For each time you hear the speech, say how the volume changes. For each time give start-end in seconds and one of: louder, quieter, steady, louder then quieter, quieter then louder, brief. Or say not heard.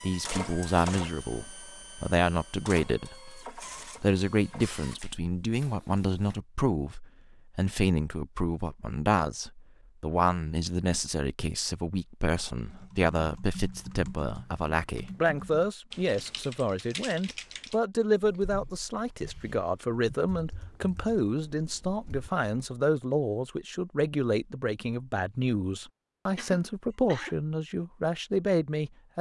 0.0-29.1 steady.